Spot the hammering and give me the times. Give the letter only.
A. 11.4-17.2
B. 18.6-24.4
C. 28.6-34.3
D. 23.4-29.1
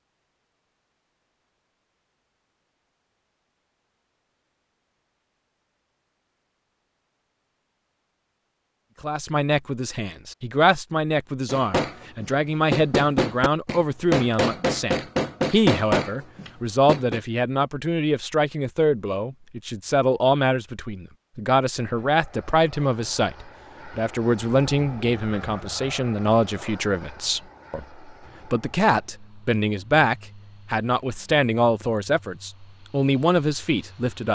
A.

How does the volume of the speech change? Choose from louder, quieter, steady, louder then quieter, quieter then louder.
steady.